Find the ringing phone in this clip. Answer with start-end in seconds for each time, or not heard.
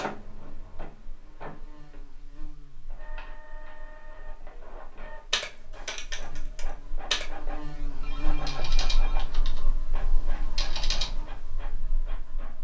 8.0-9.3.